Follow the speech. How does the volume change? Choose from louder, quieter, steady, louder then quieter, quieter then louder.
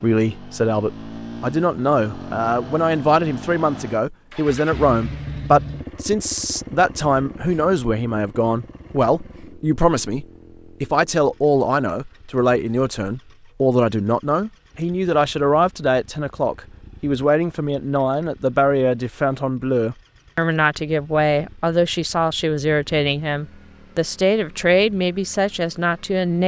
steady.